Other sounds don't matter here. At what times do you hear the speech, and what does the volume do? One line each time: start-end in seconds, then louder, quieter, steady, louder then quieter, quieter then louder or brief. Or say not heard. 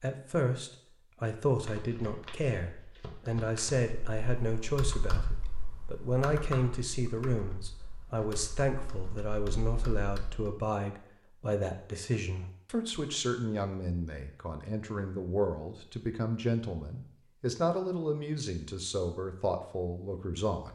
0.0-20.6 steady.